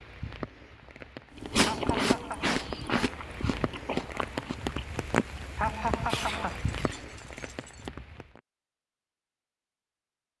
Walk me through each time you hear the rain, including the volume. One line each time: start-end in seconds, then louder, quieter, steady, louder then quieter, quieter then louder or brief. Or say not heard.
0.0-8.4 louder then quieter.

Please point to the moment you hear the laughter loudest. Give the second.
6 s.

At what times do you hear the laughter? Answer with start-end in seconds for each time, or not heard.
1.6-2.5, 5.5-6.6.